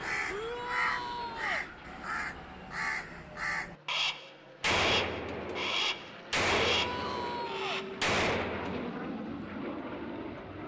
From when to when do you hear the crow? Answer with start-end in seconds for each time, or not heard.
0.0-8.0.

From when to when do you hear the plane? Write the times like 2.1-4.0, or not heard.
0.0-10.6.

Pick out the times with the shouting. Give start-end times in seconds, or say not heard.
0.2-1.6, 6.7-7.8.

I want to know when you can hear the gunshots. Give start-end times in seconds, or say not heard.
4.6-8.9.